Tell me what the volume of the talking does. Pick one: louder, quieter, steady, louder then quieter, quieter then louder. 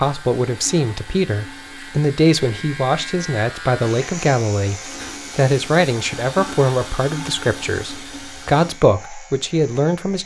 steady.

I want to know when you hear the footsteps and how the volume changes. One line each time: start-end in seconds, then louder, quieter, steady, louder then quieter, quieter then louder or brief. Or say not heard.
not heard.